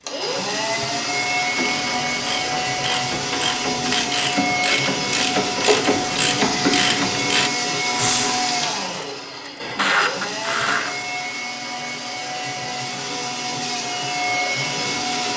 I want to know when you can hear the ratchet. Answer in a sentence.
The ratchet can be heard from 1.6 to 10.9 s.